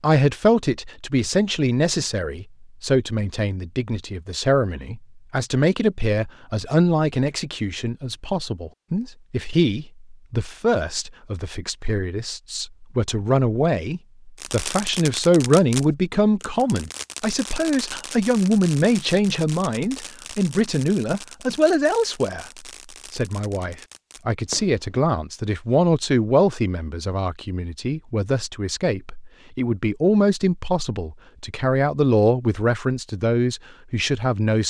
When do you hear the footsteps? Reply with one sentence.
You can't hear the footsteps here.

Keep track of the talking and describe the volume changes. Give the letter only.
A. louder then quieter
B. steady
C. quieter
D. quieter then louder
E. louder
B.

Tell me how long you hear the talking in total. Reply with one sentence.
The talking can be heard for 34 seconds in total.